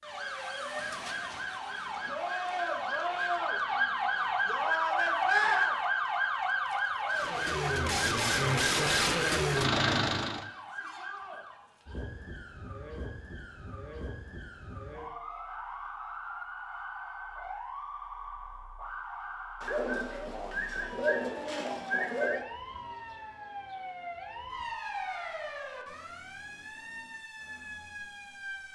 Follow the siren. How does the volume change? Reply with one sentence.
The volume of the siren goes down.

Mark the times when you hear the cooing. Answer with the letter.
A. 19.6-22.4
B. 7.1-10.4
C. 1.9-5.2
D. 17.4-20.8
A.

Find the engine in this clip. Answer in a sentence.
The engine can be heard from 7.1 to 10.4 s.